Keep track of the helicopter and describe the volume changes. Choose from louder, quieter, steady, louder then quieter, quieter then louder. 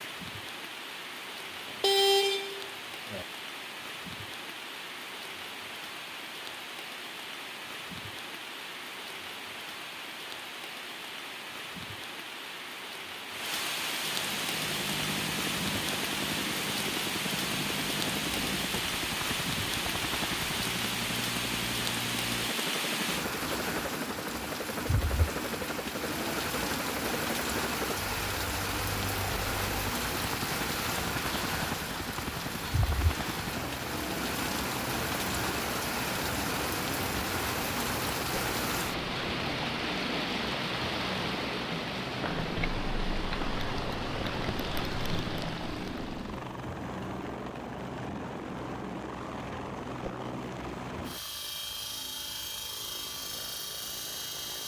steady.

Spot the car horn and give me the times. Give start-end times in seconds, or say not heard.
1.6-3.2.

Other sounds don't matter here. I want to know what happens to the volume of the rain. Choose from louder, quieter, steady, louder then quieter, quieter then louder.
louder.